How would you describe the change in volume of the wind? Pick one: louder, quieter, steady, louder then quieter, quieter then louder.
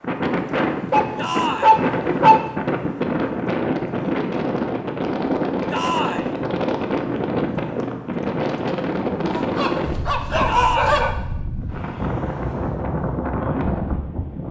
steady.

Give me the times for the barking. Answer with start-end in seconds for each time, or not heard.
0.9-2.5, 9.3-11.2.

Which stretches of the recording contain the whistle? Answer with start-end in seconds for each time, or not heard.
not heard.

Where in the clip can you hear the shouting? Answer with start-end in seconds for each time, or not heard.
1.1-1.8, 5.7-6.3, 10.4-11.1.